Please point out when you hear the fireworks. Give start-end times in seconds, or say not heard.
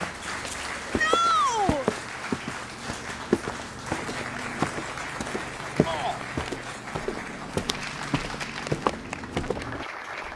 not heard.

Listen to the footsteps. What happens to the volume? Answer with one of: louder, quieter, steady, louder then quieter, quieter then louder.
steady.